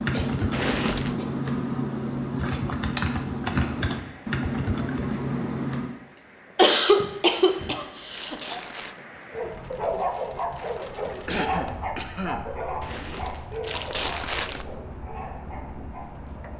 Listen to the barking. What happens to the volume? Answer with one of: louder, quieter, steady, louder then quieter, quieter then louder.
quieter.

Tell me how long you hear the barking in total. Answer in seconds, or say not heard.
7 s.